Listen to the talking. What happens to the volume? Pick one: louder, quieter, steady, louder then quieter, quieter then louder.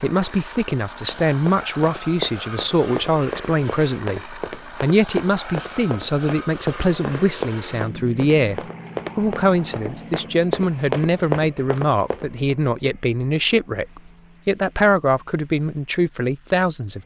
steady.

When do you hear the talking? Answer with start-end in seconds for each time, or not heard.
0.0-17.0.